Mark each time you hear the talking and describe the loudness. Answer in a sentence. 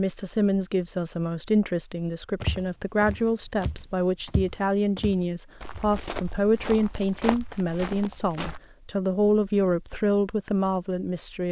The talking can be heard from 0.0 to 11.4 s, at a steady volume.